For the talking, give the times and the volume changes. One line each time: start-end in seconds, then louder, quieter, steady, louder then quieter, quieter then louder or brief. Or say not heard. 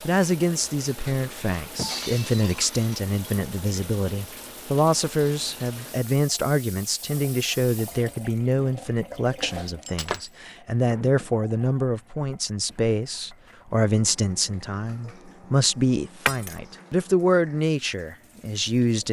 0.0-19.0 steady.